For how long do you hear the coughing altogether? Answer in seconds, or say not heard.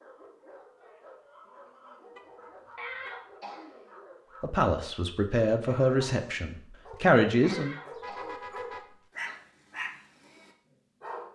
3 s.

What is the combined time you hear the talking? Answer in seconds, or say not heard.
3 s.